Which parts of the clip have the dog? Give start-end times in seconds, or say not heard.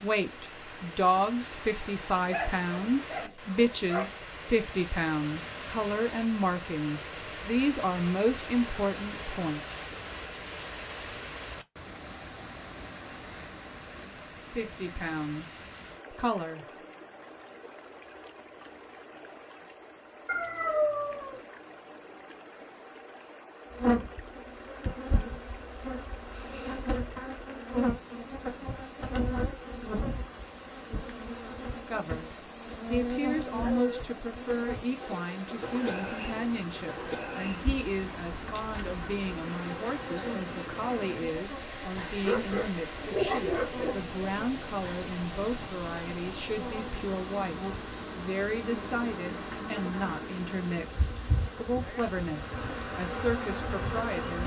2.3-4.2, 20.2-21.4, 33.6-34.0, 42.2-44.0.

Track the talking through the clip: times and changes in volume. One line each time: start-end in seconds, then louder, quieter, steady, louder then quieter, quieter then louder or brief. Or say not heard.
0.0-9.6 steady
13.9-16.6 brief
31.8-54.4 steady.